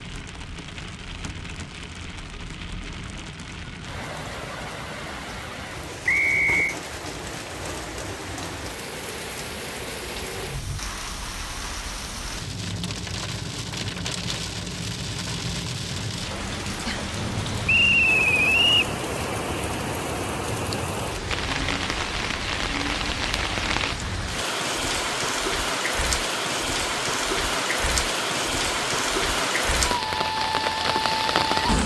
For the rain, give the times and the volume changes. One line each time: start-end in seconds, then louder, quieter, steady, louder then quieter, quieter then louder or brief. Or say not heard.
0.0-31.8 louder.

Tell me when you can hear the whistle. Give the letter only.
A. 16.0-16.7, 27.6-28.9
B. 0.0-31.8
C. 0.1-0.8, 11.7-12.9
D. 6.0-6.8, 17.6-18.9
D.